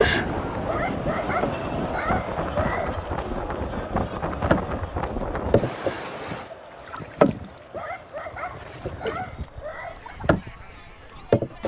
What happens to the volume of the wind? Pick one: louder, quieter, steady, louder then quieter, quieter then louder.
quieter.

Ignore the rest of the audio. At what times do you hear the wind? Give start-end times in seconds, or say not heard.
0.0-11.4.